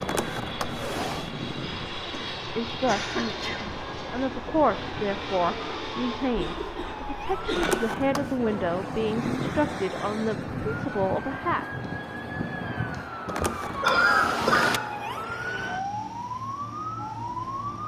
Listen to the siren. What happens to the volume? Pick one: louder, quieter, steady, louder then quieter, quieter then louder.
louder.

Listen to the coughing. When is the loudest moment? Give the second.
14 s.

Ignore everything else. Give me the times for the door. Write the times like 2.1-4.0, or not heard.
0.0-1.3, 7.5-8.4, 13.2-14.8.